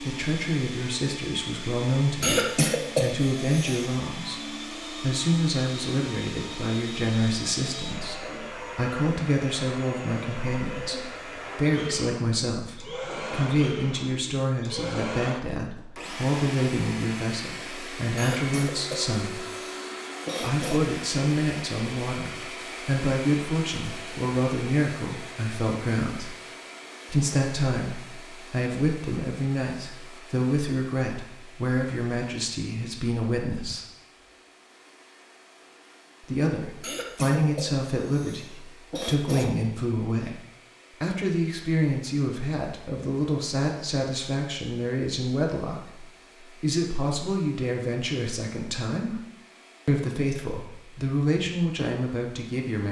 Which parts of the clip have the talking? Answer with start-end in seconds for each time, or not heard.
0.0-19.5, 20.4-26.4, 27.1-33.8, 36.2-49.2, 49.9-52.8.